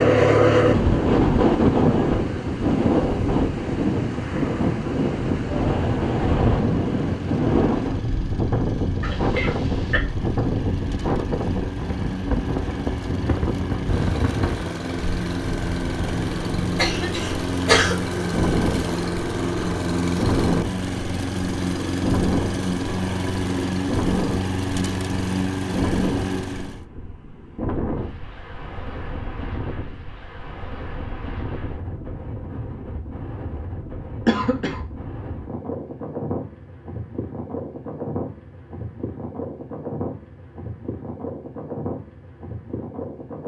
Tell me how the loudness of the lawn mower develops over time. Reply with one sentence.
The loudness of the lawn mower goes up.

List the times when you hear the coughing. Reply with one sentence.
The coughing can be heard from 9.0 to 10.0 s, from 16.8 to 17.9 s and from 34.2 to 34.8 s.